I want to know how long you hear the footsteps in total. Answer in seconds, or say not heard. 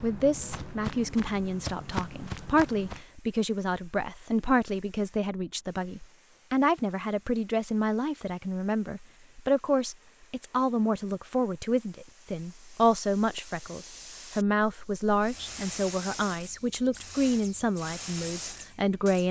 3 s.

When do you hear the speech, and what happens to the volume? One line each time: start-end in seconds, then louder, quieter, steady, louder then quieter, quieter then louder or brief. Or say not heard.
0.0-19.2 steady.